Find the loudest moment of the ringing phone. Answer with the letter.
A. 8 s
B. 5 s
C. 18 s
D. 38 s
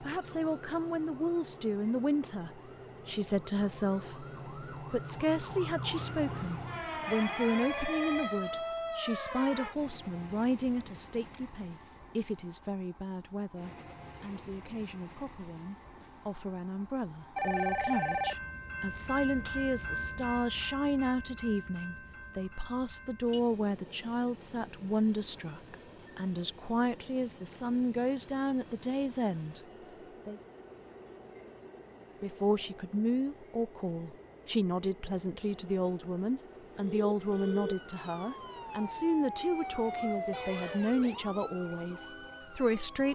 C.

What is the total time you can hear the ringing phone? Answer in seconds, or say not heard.
4 s.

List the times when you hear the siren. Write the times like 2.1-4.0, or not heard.
0.0-9.8, 37.2-43.1.